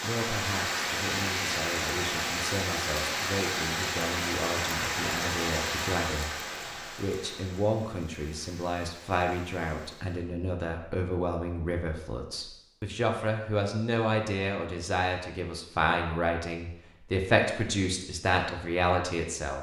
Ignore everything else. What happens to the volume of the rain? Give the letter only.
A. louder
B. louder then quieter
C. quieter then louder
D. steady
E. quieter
E.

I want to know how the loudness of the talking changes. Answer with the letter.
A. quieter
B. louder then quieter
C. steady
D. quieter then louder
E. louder
E.